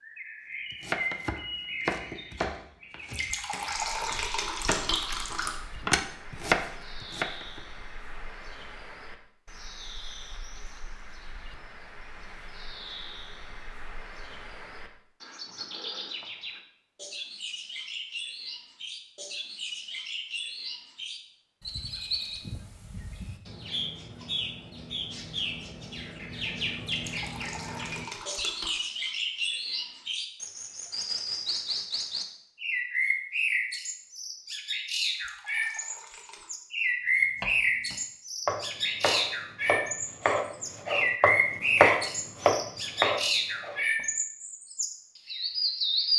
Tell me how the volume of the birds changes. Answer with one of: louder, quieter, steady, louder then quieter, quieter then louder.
louder.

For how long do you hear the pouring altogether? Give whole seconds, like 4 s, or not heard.
6 s.